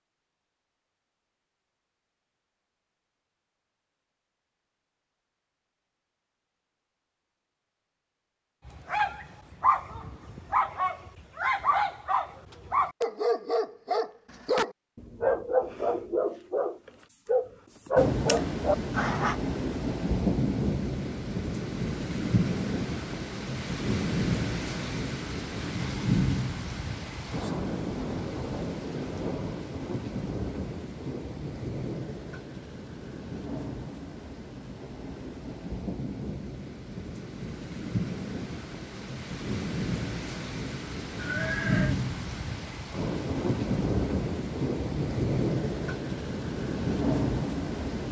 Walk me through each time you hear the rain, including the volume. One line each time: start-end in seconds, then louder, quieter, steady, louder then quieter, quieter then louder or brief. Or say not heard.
17.9-48.0 quieter then louder.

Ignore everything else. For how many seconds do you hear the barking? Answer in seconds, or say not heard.
11 s.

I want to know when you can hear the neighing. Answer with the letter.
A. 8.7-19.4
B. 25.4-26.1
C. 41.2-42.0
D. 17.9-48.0
C.